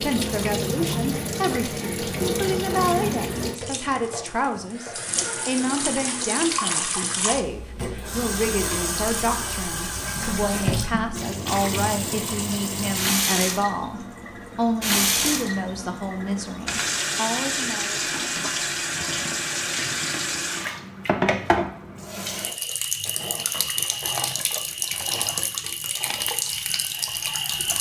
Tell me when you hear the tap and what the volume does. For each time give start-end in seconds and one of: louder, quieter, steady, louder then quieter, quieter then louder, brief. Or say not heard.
0.0-27.7 steady.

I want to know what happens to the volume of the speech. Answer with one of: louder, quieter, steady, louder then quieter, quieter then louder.
steady.